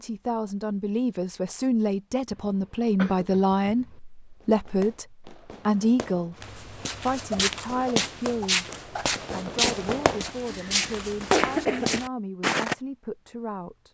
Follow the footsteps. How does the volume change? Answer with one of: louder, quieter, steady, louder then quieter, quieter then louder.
steady.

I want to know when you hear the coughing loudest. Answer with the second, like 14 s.
11 s.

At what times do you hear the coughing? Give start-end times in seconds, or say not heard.
2.3-4.0, 10.4-12.0.